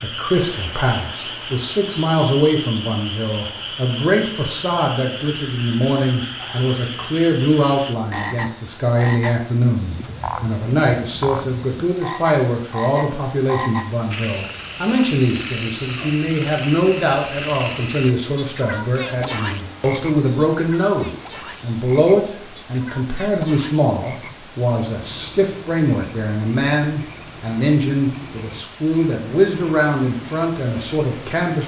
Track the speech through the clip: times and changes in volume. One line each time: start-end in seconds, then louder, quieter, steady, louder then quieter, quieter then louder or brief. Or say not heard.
0.0-31.6 steady.